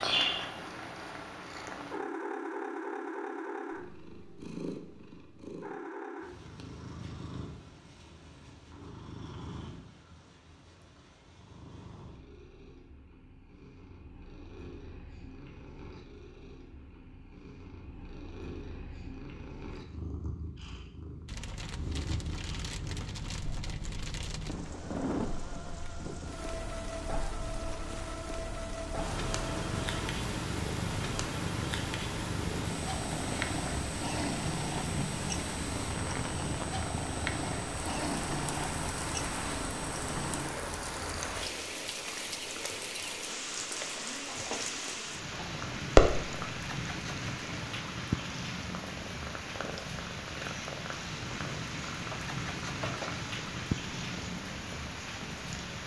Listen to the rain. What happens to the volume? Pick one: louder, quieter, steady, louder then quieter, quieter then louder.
steady.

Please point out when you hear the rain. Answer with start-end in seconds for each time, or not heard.
21.2-55.8.